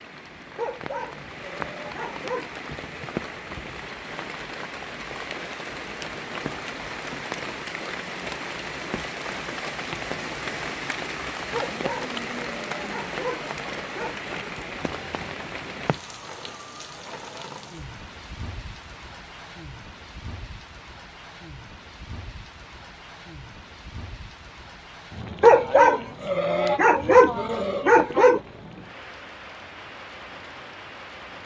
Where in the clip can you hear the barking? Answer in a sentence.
The barking can be heard from 0.6 to 2.6 s, from 11.5 to 14.2 s and from 25.4 to 28.4 s.